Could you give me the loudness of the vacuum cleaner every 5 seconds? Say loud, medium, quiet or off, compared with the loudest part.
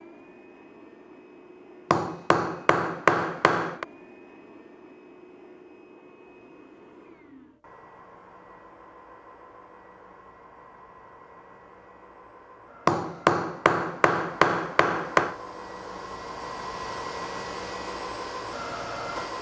quiet, quiet, quiet, loud.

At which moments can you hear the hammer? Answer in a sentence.
You can hear the hammer from 1.9 to 3.9 s and from 12.8 to 15.3 s.